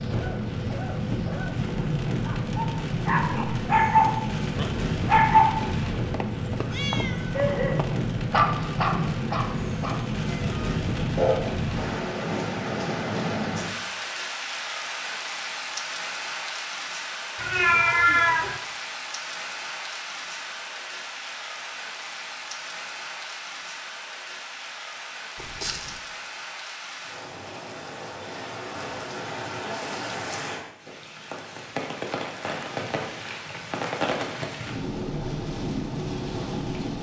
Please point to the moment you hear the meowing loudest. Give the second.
18 s.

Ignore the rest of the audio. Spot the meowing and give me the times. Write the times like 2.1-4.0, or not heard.
6.1-7.8, 17.4-18.6, 25.4-26.0.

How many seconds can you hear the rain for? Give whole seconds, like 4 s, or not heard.
37 s.